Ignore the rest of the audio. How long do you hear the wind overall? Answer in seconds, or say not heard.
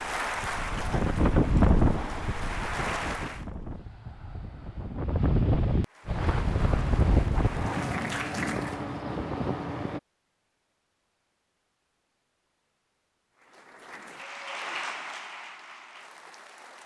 10 s.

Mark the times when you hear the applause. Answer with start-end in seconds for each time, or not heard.
0.0-3.5, 5.8-9.0, 13.3-16.8.